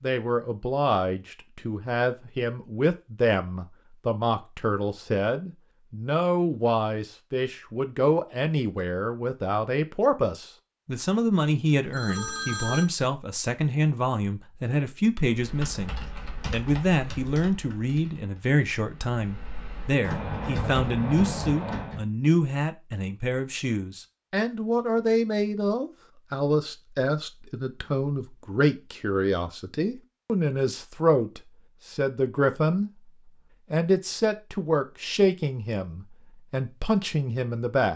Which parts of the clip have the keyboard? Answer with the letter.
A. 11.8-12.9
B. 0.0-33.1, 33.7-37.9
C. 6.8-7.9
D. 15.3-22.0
D.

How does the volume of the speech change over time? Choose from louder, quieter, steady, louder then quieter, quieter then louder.
steady.